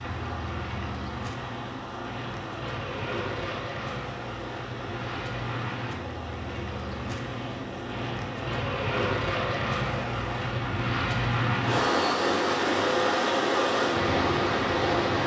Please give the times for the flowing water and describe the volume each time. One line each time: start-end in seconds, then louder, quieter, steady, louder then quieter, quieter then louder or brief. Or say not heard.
0.0-15.2 louder.